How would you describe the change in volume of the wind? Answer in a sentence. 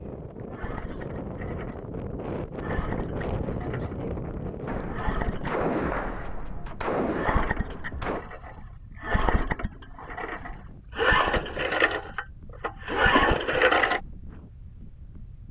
The loudness of the wind goes down.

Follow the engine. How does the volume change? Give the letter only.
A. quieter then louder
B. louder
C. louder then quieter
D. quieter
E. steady
B.